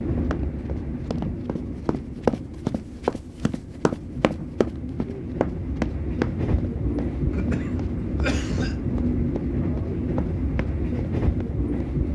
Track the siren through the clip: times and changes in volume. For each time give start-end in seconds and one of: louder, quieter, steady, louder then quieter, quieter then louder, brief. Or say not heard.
not heard.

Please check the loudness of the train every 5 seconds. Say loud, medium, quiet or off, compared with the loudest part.
medium, loud, loud.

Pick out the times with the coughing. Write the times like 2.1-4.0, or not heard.
7.3-8.8.